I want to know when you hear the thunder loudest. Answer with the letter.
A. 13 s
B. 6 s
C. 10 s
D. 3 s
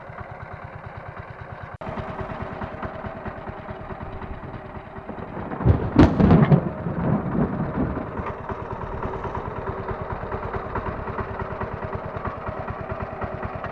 B.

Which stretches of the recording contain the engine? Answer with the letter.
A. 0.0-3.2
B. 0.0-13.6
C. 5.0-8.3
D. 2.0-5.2
B.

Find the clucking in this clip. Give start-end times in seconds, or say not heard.
not heard.